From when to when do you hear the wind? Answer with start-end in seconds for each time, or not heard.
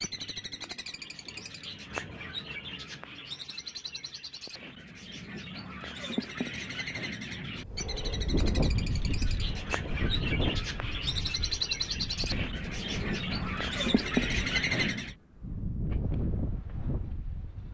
7.6-17.6.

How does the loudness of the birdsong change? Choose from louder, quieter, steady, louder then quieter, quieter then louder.
louder.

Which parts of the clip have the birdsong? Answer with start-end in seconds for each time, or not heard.
0.0-15.2.